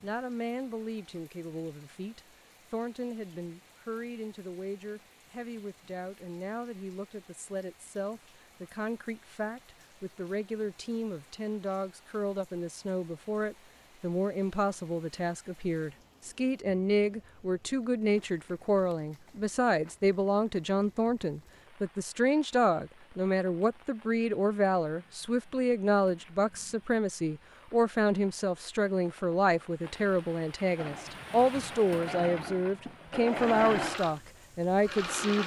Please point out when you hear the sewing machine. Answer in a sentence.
You can hear the sewing machine from 30.8 to 35.4 s.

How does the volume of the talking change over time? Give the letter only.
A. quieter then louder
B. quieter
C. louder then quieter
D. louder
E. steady
D.